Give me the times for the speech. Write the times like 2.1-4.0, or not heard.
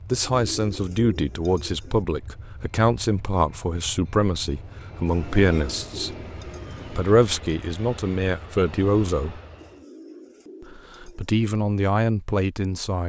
0.1-6.2, 6.9-9.4, 10.7-13.0.